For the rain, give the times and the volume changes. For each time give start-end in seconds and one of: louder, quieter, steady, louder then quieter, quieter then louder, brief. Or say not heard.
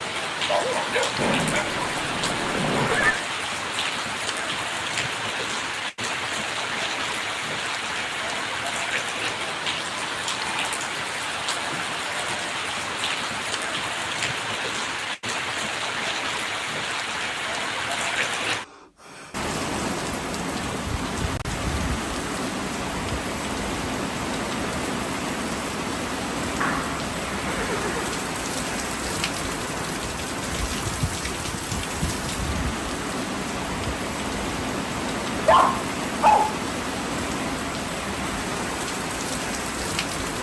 0.0-40.3 steady.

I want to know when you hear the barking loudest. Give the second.
36 s.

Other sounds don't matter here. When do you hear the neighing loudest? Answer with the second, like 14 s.
3 s.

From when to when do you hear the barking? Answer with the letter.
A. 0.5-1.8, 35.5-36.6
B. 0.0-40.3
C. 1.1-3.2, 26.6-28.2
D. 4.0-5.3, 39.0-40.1
A.